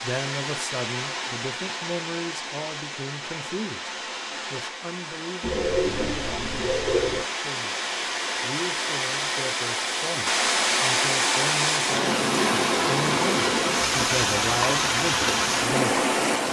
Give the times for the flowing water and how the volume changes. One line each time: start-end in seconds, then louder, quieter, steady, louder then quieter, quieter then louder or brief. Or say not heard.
0.0-16.4 louder.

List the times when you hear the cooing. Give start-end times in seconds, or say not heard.
5.4-7.2.